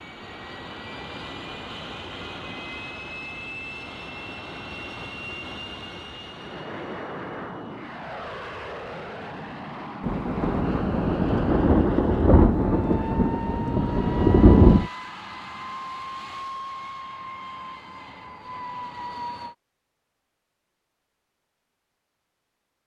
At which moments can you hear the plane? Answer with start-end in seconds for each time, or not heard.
0.0-19.6.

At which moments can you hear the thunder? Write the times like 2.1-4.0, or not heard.
10.0-14.9.